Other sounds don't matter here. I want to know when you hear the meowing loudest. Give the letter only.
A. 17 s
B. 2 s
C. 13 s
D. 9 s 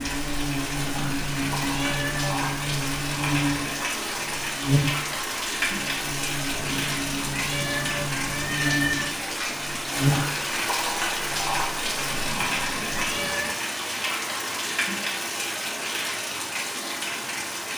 D.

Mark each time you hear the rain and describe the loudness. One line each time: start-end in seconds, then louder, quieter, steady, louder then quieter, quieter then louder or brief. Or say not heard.
0.0-17.7 steady.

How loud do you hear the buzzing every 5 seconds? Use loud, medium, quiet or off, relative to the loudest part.
loud, medium, loud, off.